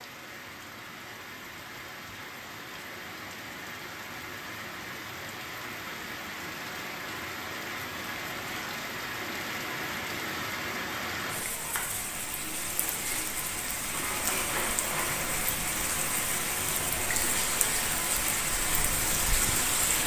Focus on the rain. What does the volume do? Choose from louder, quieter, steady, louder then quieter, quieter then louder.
louder.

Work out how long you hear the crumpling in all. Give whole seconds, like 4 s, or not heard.
2 s.